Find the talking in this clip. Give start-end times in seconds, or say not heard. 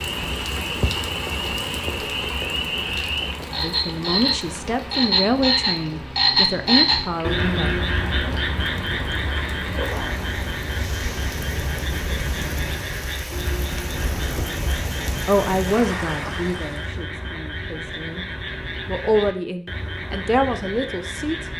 3.5-7.7, 15.2-18.2, 18.9-21.4.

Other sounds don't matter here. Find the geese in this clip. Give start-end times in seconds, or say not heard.
not heard.